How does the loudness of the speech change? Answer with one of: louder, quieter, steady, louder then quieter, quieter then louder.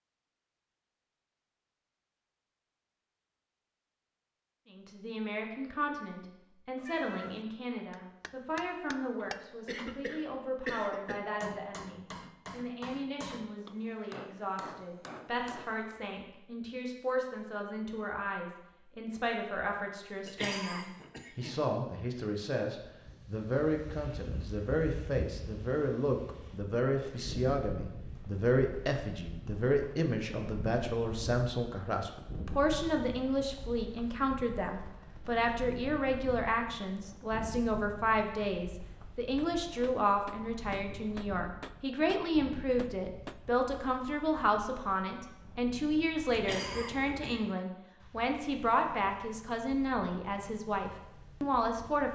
louder.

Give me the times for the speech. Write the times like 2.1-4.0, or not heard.
4.7-52.1.